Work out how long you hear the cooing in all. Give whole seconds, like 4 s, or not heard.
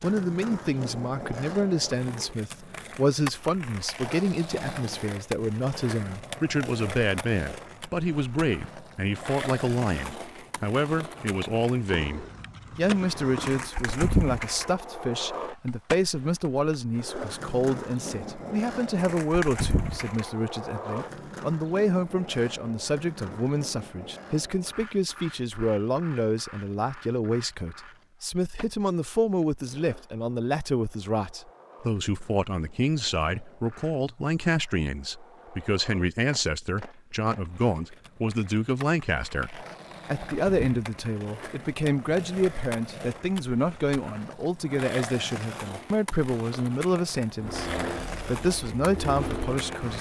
4 s.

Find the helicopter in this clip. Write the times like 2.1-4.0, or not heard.
47.4-49.9.